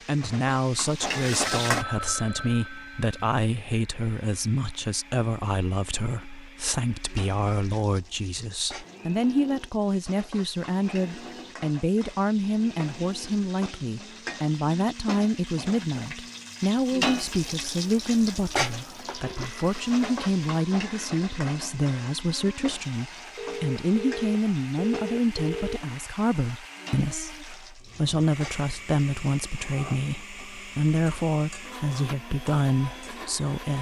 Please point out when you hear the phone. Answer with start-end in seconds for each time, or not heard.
1.4-3.4, 18.8-19.9, 23.4-25.8.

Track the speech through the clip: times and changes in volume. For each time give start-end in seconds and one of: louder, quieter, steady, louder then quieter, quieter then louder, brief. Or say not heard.
0.1-33.7 steady.